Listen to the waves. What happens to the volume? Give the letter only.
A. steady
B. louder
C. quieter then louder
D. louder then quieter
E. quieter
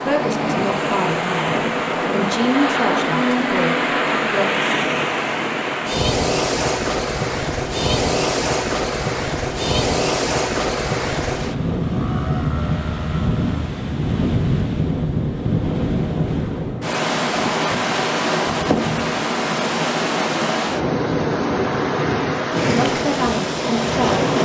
A.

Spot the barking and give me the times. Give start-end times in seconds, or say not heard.
not heard.